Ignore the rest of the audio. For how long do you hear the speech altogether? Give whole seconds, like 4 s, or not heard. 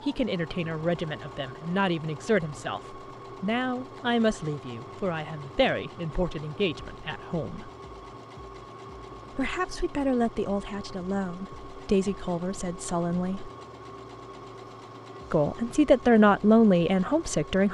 14 s.